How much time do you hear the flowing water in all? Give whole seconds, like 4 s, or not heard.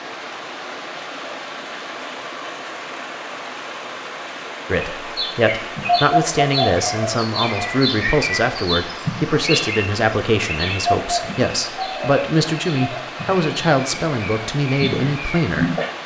16 s.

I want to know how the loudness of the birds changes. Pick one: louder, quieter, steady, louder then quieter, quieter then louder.
quieter.